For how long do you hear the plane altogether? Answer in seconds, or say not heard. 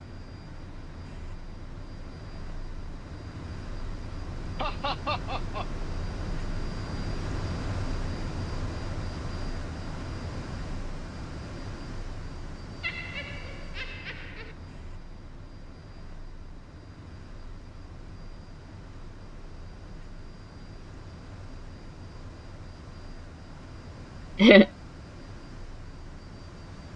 27 s.